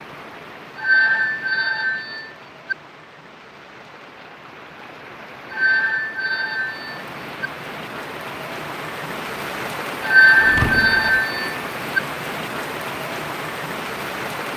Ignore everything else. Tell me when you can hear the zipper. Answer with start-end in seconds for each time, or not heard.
not heard.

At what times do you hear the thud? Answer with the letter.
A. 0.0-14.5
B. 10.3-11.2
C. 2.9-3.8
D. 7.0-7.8
B.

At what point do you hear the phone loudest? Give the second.
10 s.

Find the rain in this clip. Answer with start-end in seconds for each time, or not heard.
0.0-14.5.